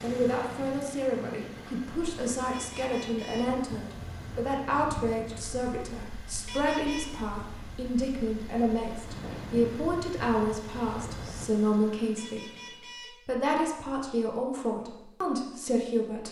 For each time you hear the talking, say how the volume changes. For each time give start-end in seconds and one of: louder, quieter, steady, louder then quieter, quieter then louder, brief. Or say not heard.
0.0-16.2 steady.